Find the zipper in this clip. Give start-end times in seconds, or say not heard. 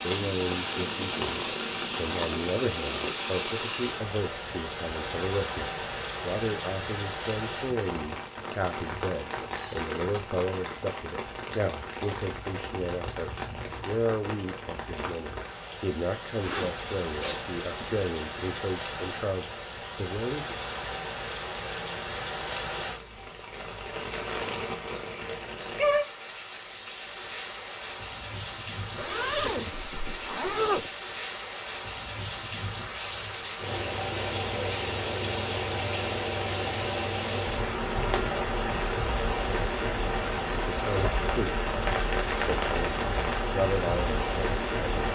16.4-17.9, 28.9-30.9.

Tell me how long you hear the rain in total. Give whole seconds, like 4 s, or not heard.
45 s.